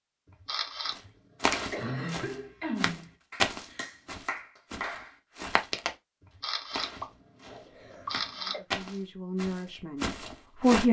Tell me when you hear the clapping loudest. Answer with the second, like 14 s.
5 s.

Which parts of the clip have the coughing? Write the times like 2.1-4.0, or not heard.
1.7-3.1, 7.0-8.7.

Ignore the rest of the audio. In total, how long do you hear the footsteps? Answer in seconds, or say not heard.
9 s.